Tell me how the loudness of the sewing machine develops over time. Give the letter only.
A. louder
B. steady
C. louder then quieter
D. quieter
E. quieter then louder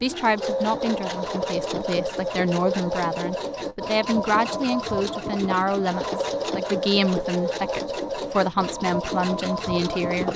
B.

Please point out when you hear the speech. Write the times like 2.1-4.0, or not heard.
0.0-10.3.